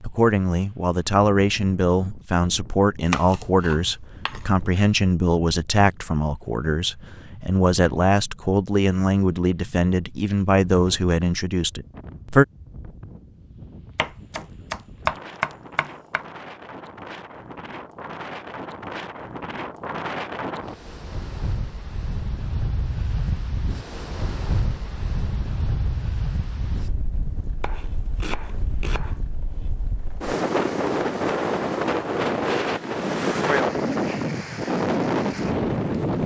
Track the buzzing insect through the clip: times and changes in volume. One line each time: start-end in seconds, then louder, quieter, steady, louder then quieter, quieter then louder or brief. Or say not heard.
not heard.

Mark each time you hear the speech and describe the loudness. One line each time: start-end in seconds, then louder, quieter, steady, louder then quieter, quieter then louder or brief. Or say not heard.
0.0-12.4 steady.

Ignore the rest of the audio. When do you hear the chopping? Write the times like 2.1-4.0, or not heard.
3.0-4.5, 13.9-16.2, 27.6-29.2.